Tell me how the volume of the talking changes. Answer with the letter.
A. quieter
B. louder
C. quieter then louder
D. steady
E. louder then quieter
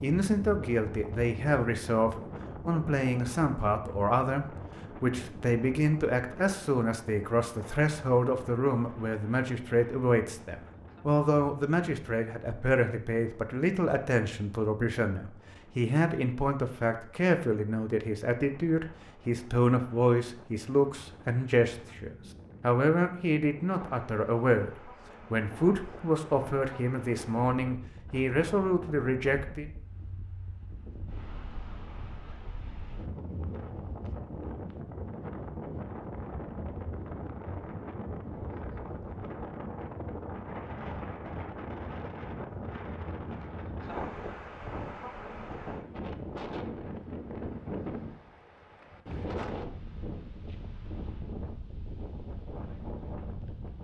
D.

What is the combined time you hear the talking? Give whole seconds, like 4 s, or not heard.
30 s.